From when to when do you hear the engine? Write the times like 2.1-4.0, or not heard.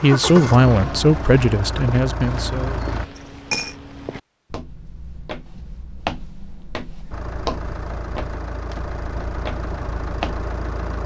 0.0-3.0, 7.1-11.0.